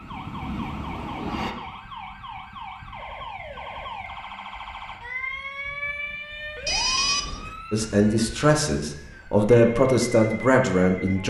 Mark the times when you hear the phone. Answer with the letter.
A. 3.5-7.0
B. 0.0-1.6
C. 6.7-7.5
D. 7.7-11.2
C.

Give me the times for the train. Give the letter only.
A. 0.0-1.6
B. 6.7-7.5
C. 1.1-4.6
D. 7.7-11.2
A.